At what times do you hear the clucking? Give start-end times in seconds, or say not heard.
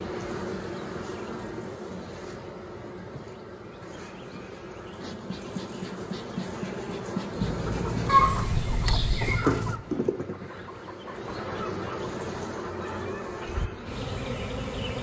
7.3-13.7.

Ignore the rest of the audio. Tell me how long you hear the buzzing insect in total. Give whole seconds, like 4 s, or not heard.
15 s.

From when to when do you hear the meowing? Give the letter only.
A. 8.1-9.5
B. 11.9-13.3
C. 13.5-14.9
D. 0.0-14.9
A.